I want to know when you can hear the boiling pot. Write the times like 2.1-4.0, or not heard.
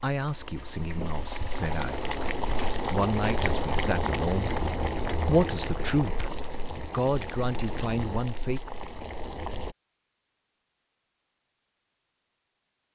0.1-9.8.